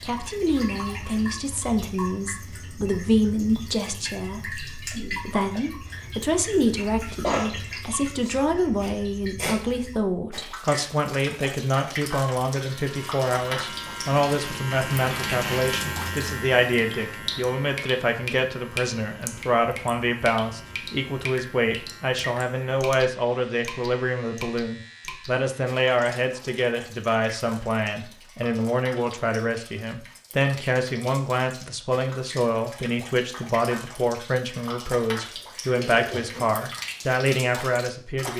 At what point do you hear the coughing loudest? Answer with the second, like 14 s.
7 s.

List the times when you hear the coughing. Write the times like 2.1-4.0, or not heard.
6.8-7.5, 35.3-36.6.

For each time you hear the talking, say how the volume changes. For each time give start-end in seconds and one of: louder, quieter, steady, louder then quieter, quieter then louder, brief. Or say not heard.
0.1-38.3 steady.